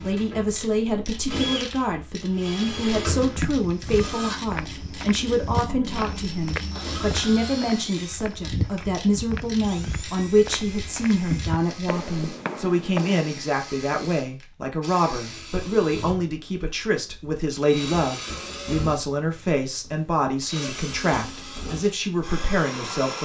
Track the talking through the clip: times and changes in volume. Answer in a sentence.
The talking can be heard from 0.0 to 23.1 s, at a steady volume.